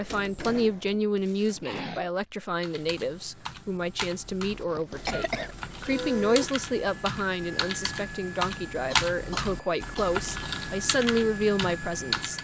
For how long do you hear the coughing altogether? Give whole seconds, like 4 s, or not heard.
3 s.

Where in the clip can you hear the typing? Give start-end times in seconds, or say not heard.
2.6-12.3.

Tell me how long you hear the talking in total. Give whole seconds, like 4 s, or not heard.
12 s.